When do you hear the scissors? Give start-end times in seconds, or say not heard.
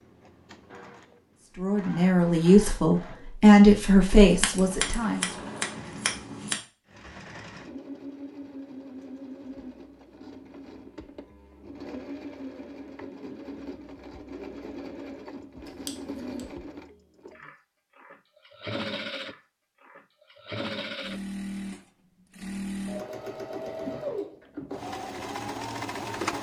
4.4-6.6, 15.7-16.4.